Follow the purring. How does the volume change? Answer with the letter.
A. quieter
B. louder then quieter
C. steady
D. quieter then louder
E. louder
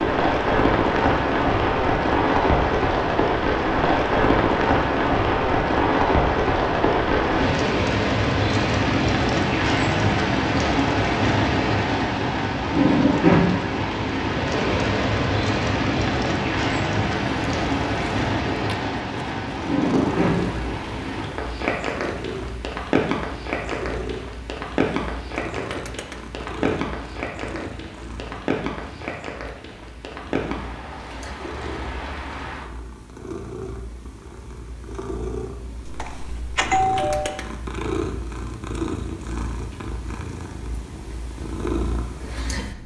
D.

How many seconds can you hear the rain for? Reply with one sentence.
You can hear the rain for 33 seconds altogether.